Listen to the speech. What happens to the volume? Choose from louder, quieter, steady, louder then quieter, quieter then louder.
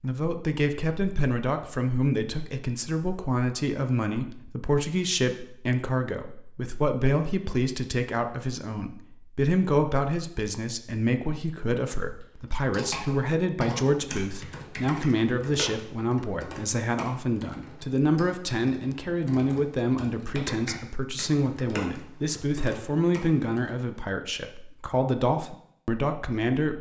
steady.